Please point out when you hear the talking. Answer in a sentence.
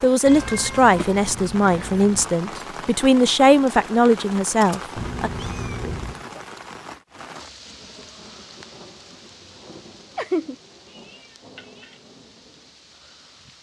You can hear the talking from 0.0 to 5.3 s.